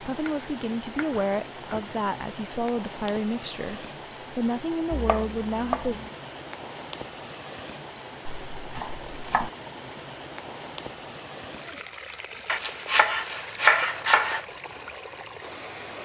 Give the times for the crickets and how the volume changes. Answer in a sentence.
You can hear the crickets from 0.2 to 16.0 s, at a steady volume.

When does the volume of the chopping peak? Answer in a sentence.
The volume of the chopping peaks at 14 seconds.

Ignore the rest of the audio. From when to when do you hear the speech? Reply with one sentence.
You can hear the speech from 0.0 to 6.0 s.